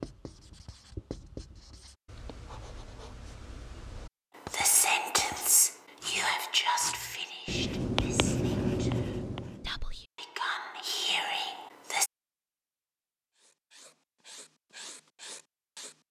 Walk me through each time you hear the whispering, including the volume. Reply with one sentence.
The whispering can be heard from 4.5 to 12.1 s, getting quieter then louder.